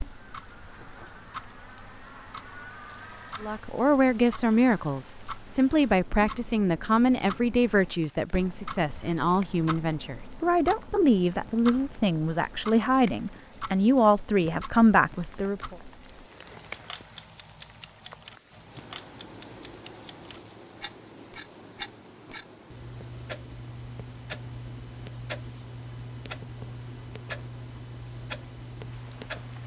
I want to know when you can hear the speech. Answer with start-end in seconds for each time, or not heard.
3.4-15.8.